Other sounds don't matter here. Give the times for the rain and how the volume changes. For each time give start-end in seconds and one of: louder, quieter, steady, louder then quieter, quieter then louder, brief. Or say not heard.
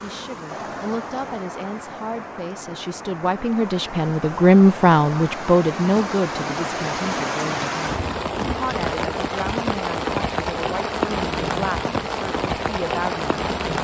0.0-13.8 louder.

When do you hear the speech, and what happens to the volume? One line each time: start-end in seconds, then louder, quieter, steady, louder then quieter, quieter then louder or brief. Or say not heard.
0.0-13.8 louder then quieter.